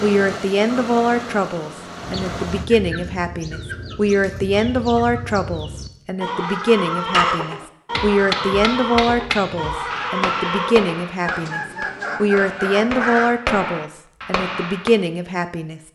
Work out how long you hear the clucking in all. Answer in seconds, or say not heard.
11 s.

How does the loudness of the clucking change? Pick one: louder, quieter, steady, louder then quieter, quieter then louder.
louder.